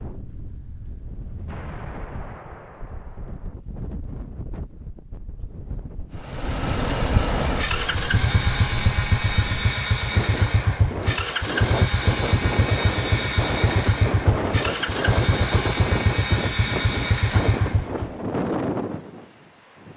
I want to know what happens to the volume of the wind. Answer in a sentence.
The volume of the wind goes up.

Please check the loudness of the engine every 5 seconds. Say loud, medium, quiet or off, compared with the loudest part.
off, loud, loud, loud.